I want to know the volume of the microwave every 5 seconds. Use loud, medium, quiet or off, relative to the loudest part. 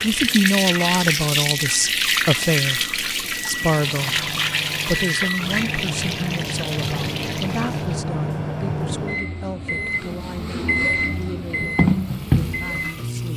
medium, loud, loud.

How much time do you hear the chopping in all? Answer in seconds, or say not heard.
not heard.